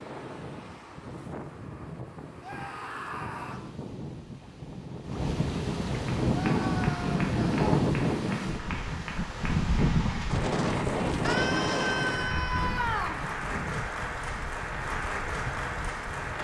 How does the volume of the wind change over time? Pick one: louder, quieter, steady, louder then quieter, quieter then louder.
louder then quieter.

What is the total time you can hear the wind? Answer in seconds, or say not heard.
16 s.